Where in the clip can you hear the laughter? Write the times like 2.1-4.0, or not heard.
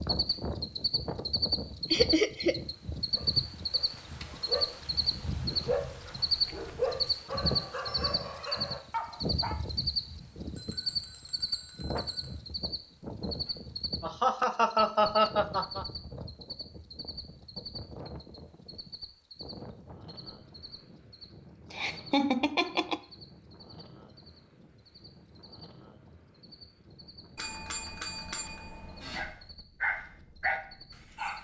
1.9-2.6, 14.0-15.8, 21.7-23.0.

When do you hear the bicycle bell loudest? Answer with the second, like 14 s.
28 s.